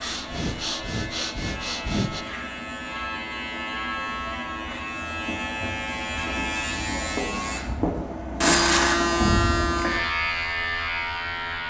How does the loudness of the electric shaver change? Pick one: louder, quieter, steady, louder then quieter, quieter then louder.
louder.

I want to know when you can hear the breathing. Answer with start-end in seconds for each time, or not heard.
0.0-2.2.